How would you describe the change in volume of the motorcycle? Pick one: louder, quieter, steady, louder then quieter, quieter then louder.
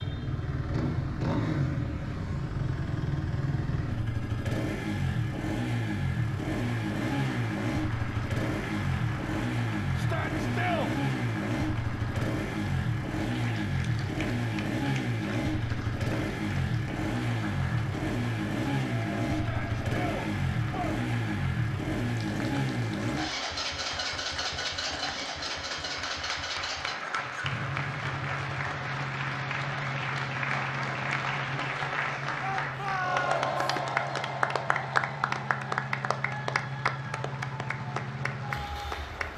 quieter.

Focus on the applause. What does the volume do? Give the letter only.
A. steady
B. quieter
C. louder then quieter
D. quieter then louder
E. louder
E.